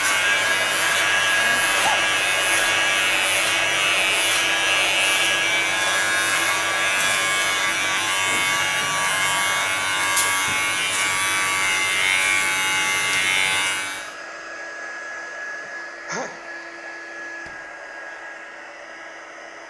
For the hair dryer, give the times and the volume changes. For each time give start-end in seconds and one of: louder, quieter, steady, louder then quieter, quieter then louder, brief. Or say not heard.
0.0-19.6 quieter.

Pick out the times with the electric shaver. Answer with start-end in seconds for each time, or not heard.
0.0-14.2.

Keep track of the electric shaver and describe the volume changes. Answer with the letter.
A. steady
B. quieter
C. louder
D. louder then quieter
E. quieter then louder
A.